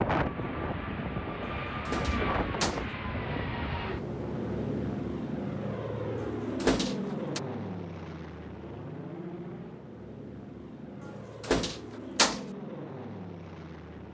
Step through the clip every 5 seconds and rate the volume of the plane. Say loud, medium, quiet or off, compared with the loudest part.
loud, loud, medium.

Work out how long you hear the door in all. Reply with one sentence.
The door can be heard for 4 seconds in total.